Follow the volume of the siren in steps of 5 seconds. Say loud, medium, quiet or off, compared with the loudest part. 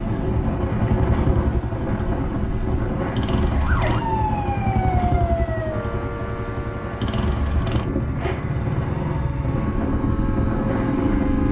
loud, medium, medium.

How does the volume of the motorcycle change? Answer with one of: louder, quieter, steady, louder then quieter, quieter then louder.
steady.